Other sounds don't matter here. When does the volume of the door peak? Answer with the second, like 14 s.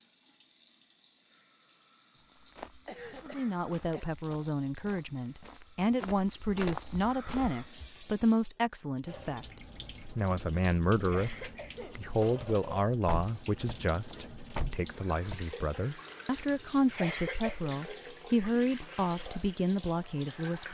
15 s.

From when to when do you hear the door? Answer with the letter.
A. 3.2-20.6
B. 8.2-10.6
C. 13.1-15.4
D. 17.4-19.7
C.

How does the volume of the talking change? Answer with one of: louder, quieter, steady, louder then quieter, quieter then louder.
steady.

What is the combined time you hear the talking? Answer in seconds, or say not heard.
17 s.